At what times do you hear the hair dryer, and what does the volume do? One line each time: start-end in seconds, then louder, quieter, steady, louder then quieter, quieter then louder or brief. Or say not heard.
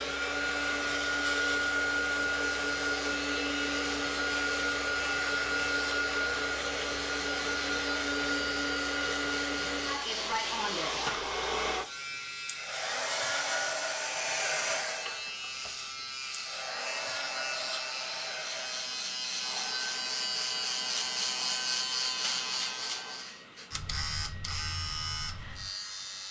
0.0-26.2 quieter.